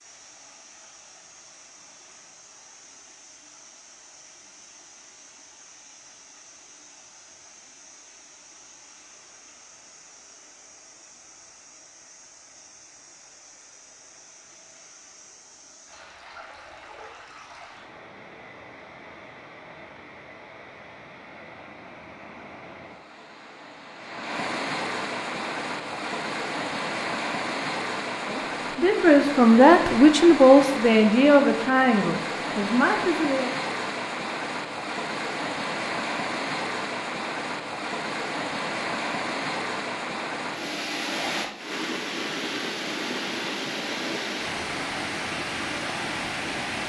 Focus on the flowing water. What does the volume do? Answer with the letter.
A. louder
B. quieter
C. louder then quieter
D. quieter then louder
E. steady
A.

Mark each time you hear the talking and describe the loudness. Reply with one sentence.
The talking can be heard from 28.2 to 33.5 s, getting quieter.